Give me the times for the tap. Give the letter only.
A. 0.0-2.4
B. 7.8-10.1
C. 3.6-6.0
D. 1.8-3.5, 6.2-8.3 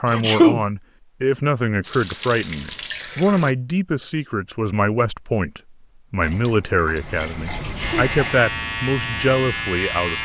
D.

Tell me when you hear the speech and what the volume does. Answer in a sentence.
The speech can be heard from 0.0 to 10.1 s, at a steady volume.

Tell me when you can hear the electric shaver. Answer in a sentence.
The electric shaver can be heard from 7.8 to 10.1 s.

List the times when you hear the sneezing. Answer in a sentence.
You can hear the sneezing from 0.1 to 0.6 s and from 7.6 to 8.1 s.